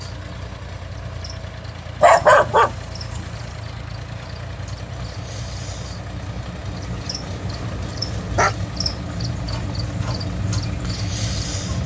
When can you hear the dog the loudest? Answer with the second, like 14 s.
2 s.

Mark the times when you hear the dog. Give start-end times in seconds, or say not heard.
2.0-3.4, 6.8-8.6.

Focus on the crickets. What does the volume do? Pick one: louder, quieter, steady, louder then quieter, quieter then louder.
louder.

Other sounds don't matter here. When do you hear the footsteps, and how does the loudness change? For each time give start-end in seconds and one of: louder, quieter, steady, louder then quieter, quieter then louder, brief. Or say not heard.
not heard.